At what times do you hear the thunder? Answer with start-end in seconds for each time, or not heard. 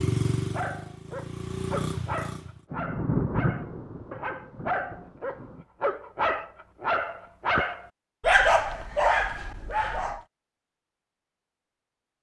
2.7-5.7.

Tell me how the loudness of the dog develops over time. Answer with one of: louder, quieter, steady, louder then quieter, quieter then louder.
louder.